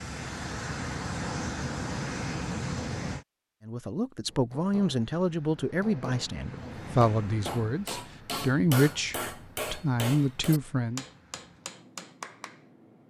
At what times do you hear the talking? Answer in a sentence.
The talking can be heard from 3.6 to 11.1 s.